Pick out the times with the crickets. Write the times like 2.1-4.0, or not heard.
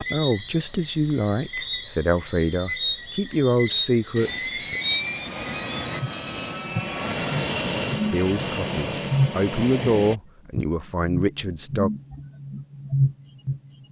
0.0-13.8.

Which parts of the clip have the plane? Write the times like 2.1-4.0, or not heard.
4.2-10.2.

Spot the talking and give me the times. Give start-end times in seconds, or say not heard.
0.0-4.8, 8.1-11.9.